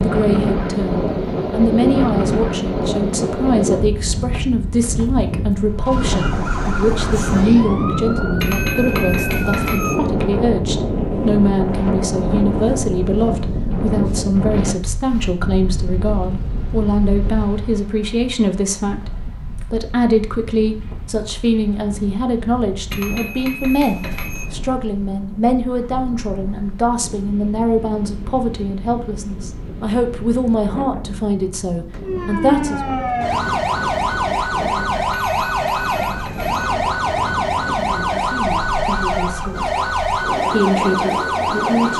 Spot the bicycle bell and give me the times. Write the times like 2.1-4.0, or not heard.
8.4-10.0, 22.9-24.5, 35.1-36.6.